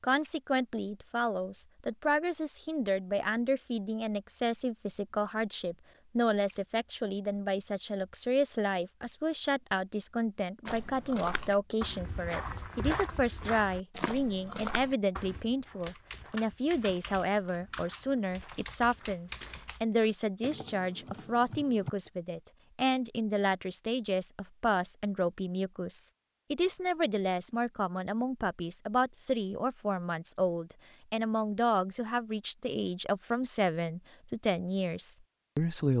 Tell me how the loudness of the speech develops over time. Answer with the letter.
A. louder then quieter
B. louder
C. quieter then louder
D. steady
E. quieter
D.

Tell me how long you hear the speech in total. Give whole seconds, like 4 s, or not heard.
36 s.